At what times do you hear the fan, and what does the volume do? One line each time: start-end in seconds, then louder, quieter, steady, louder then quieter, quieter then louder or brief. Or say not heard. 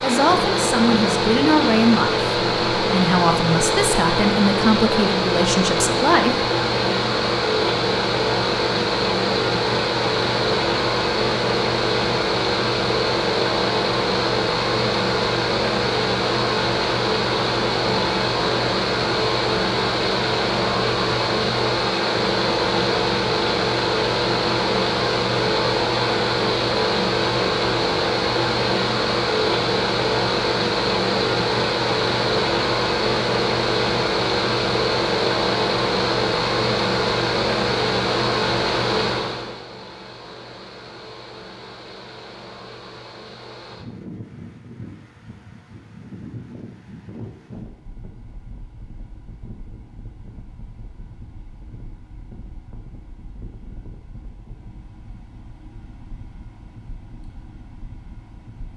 0.0-58.7 quieter.